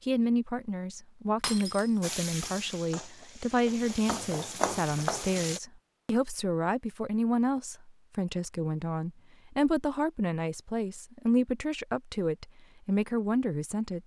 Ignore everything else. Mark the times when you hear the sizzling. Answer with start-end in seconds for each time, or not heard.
2.0-5.6.